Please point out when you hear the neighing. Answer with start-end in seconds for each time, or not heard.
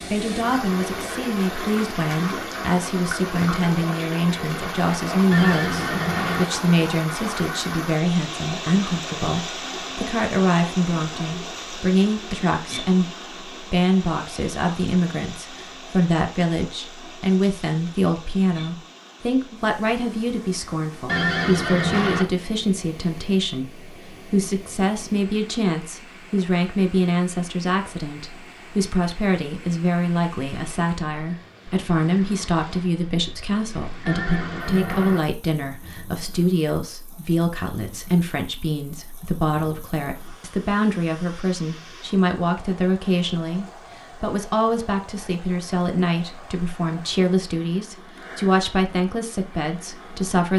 5.3-6.5, 21.1-22.2, 34.0-35.2.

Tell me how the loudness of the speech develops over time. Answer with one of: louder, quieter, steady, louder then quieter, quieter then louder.
steady.